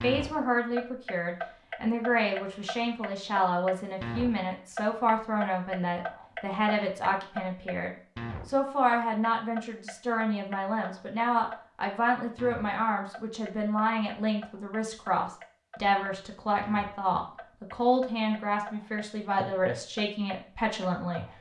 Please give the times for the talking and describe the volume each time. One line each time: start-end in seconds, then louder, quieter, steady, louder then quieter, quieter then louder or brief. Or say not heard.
0.0-21.2 steady.